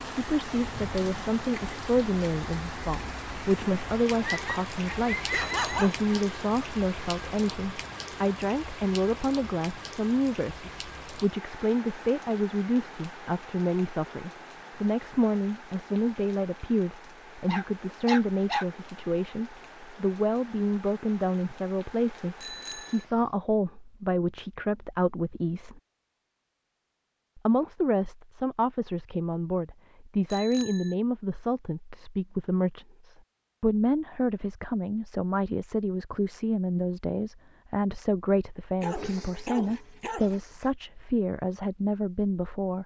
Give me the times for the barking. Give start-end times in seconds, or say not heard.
4.2-6.0, 17.4-18.6, 38.8-40.7.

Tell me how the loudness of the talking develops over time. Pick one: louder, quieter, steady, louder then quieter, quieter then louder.
steady.